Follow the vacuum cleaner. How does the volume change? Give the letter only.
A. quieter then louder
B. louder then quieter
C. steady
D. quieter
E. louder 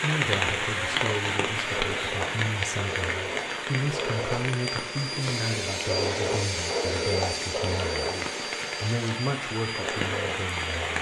B.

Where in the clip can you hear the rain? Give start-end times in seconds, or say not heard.
0.0-10.9.